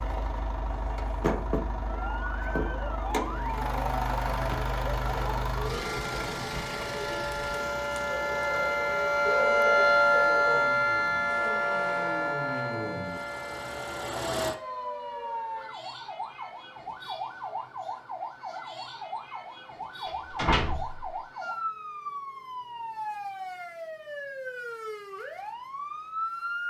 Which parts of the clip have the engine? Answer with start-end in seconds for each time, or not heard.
0.0-14.6.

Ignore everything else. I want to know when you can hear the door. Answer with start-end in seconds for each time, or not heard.
20.1-21.1.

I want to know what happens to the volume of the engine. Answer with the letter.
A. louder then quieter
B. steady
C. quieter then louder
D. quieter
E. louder
C.